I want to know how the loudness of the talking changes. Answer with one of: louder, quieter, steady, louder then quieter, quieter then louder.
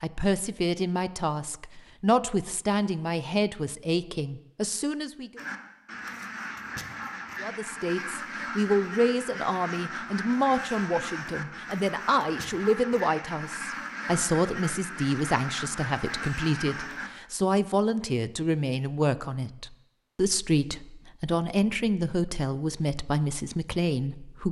steady.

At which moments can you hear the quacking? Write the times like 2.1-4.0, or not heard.
5.3-17.1.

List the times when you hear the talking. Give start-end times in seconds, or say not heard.
0.0-5.4, 7.4-24.4.